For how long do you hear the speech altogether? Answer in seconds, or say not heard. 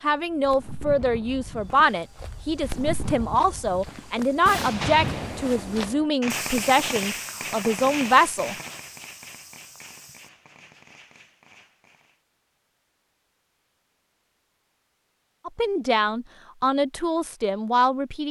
11 s.